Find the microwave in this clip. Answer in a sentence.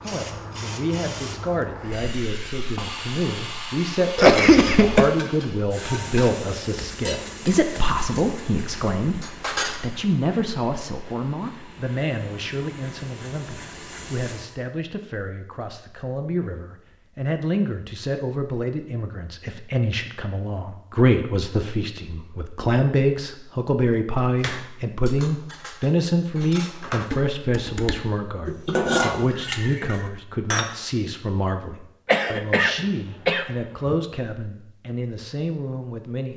The microwave can't be heard in this clip.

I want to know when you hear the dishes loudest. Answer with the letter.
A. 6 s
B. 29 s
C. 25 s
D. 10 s
B.